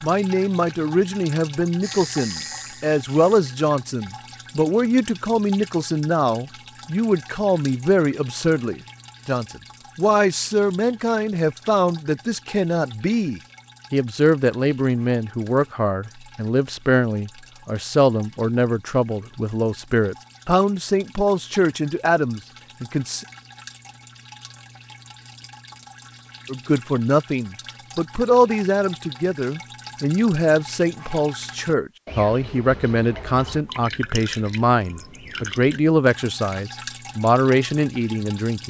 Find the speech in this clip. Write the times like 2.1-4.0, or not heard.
0.0-23.2, 26.4-38.6.